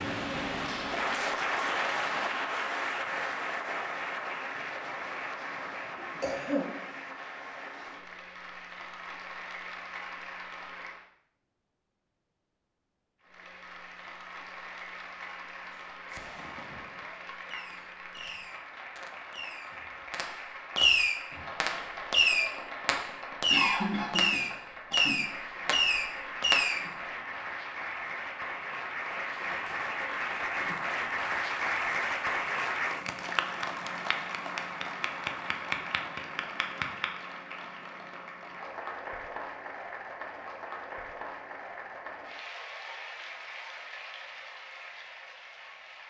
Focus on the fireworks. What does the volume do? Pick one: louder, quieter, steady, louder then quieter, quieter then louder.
louder.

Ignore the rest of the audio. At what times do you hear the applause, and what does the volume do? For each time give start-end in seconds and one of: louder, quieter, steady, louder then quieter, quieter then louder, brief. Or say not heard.
0.0-11.1 quieter
13.2-46.0 louder then quieter.